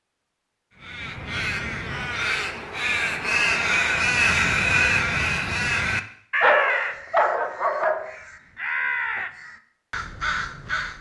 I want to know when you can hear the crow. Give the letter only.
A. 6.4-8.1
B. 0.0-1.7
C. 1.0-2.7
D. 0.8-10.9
D.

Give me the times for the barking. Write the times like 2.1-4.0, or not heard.
6.4-8.1.